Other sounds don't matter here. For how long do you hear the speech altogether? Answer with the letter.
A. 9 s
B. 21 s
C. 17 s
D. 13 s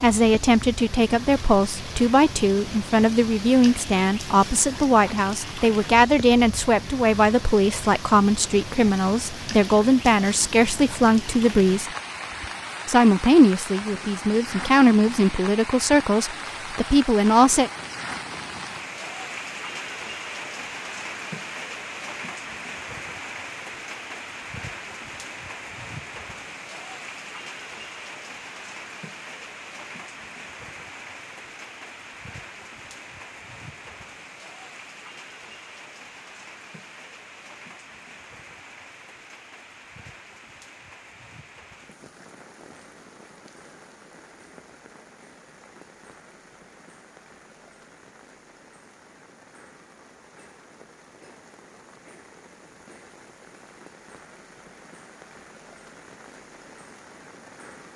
C.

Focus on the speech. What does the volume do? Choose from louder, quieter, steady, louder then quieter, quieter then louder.
steady.